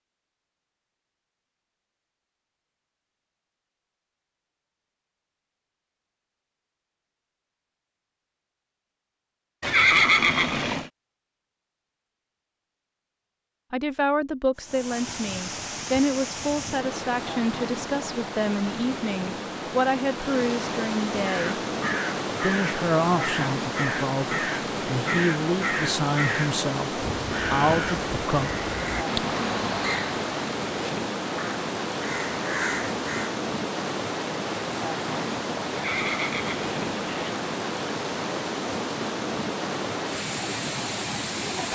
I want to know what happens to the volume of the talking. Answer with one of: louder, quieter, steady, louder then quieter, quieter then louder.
steady.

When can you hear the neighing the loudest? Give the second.
10 s.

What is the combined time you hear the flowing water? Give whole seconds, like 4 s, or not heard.
27 s.